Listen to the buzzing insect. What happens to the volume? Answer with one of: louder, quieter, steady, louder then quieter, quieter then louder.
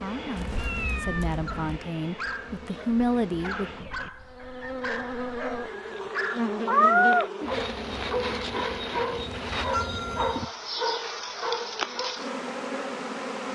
louder.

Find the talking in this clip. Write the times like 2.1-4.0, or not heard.
0.0-3.7.